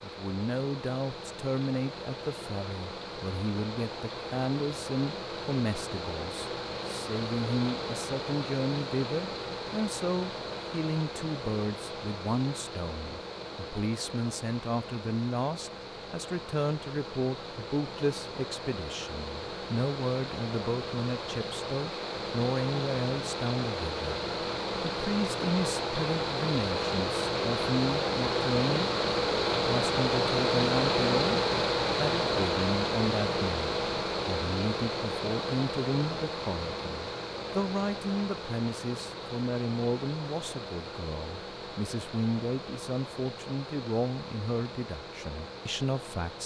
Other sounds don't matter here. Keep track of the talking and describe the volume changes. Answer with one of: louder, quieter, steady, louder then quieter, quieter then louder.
steady.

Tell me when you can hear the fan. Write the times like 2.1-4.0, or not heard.
0.0-46.4.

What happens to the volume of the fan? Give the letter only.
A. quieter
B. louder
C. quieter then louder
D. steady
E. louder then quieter
E.